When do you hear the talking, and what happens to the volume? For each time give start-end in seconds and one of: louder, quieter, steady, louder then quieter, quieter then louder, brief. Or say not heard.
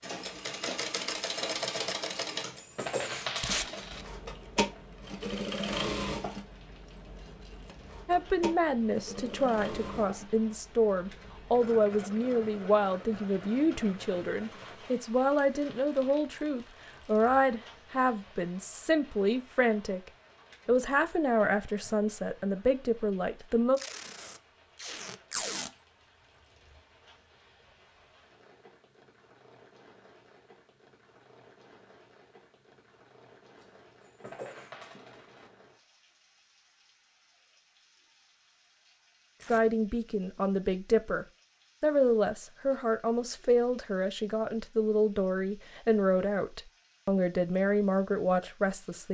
8.1-23.8 steady
39.5-49.0 steady.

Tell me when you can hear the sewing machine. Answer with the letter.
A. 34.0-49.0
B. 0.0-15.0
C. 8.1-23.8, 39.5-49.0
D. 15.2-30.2
B.